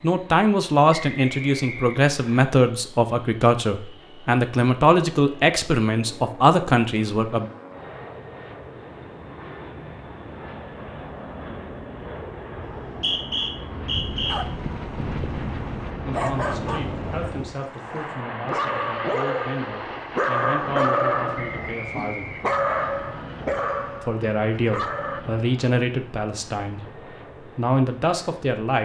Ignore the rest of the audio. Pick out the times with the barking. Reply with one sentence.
You can hear the barking from 13.9 to 25.2 s.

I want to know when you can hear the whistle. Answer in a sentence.
The whistle can be heard from 0.9 to 2.5 s, from 12.8 to 14.3 s and from 21.4 to 22.9 s.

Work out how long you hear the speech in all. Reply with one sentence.
You can hear the speech for 19 seconds altogether.